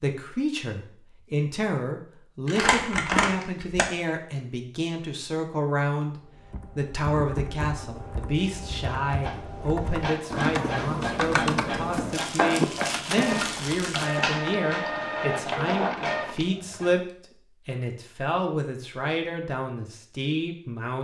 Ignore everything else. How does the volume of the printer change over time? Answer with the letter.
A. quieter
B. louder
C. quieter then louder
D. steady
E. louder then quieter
B.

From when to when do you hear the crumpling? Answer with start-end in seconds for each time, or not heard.
2.5-3.9, 12.1-14.2.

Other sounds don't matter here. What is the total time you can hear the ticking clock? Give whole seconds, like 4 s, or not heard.
not heard.